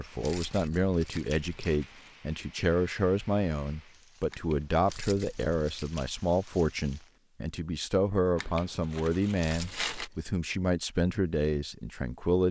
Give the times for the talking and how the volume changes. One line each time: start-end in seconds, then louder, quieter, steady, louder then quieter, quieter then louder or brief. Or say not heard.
0.0-12.4 steady.